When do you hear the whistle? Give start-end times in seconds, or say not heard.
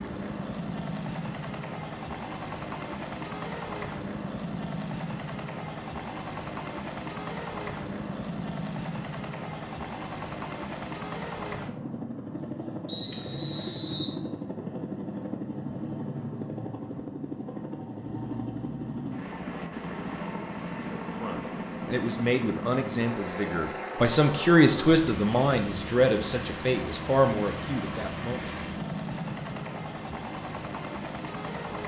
12.8-14.2.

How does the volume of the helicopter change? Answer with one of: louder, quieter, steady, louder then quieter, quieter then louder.
steady.